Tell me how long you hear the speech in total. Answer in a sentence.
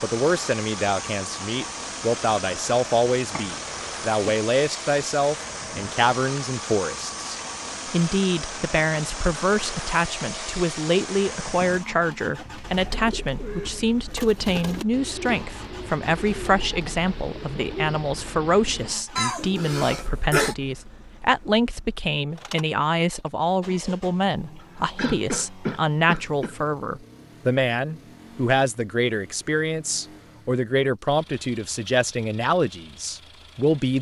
You can hear the speech for 34 seconds altogether.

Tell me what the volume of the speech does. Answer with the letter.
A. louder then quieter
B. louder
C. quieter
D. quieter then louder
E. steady
E.